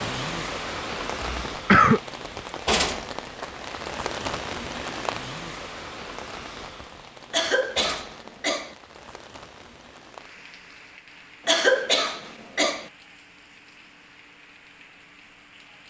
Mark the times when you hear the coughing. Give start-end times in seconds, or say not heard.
1.2-2.0, 7.3-8.8, 11.4-12.8.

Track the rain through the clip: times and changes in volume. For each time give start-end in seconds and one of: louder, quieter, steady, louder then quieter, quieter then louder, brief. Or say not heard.
0.0-15.8 quieter.